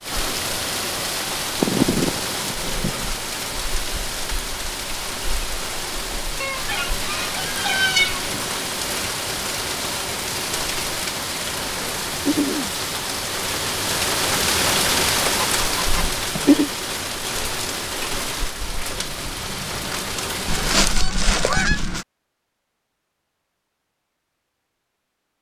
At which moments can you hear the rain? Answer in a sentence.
The rain can be heard from 0.0 to 20.9 s.